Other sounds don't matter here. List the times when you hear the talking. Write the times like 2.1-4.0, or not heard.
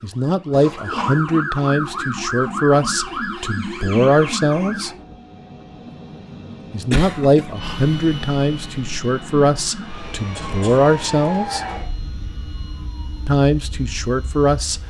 0.0-4.9, 6.7-11.7, 13.2-14.8.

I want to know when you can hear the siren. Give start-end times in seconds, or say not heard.
0.0-5.0, 9.0-14.8.